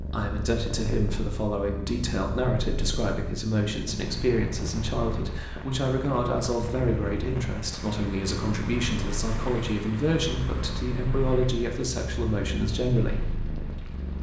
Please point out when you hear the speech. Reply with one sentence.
You can hear the speech from 0.0 to 13.3 s.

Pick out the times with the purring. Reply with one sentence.
You can hear the purring from 0.0 to 14.1 s.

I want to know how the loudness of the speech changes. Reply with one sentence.
The loudness of the speech stays about the same.